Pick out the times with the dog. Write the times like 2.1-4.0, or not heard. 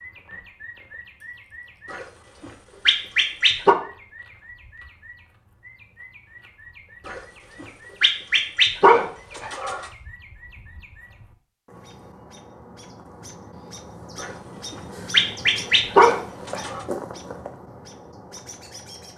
1.9-3.8, 7.0-9.9, 14.2-16.9.